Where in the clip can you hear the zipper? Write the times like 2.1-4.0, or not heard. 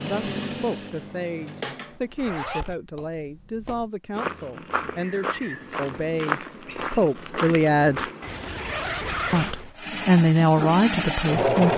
2.1-2.8, 8.2-9.7.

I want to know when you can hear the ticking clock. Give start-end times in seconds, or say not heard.
not heard.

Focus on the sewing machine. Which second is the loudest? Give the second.
11 s.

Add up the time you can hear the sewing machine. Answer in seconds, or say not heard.
4 s.